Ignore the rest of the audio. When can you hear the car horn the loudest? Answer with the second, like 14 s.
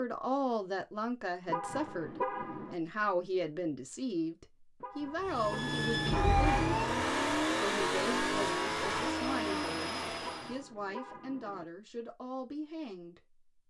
2 s.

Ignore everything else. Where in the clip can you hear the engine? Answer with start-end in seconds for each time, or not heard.
5.2-10.7.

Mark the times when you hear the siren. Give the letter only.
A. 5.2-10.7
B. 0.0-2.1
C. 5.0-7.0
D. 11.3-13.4
C.